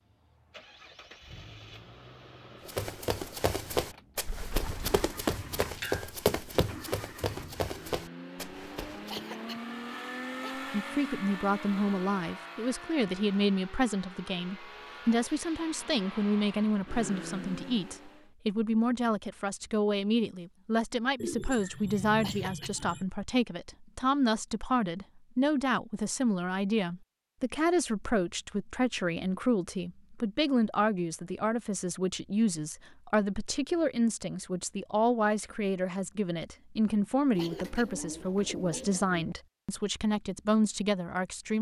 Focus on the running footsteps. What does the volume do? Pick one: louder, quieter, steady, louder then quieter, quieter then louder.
quieter.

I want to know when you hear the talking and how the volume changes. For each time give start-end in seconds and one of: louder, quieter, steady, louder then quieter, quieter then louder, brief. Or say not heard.
10.6-41.5 steady.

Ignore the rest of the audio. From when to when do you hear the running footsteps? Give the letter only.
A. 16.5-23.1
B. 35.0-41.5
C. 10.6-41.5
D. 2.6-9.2
D.